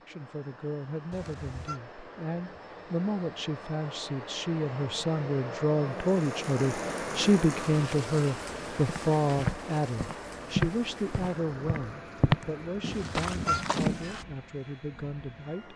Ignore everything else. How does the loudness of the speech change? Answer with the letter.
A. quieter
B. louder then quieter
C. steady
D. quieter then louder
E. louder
B.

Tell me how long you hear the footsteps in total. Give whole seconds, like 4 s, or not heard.
5 s.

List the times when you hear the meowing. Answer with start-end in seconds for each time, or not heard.
1.1-1.8, 12.9-13.7.